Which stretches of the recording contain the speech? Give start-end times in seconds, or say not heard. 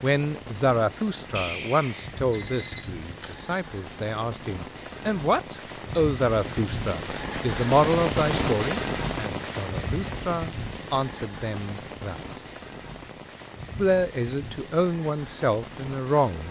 0.0-12.4, 13.8-16.4.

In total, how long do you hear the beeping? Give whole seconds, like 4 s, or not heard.
2 s.